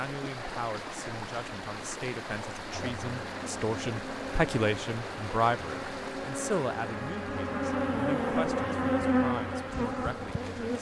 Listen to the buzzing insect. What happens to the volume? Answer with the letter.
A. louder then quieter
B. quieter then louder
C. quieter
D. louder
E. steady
D.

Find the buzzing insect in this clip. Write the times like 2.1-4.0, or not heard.
2.7-10.7.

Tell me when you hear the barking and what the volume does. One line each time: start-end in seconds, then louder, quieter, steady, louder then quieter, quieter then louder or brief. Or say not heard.
not heard.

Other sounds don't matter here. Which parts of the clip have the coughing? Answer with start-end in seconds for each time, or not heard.
not heard.